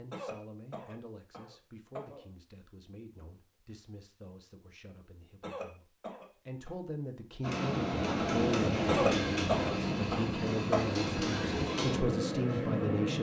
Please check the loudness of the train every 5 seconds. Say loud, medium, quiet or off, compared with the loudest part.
off, loud, loud.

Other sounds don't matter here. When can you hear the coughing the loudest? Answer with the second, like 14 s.
9 s.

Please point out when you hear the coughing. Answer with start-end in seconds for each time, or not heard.
0.1-2.2, 5.4-6.8, 8.8-10.9.